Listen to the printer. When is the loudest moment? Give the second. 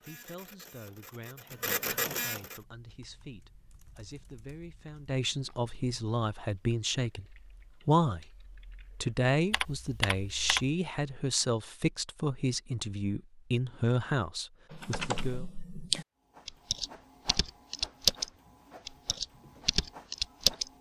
2 s.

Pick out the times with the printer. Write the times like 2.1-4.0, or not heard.
0.0-2.6, 16.2-20.7.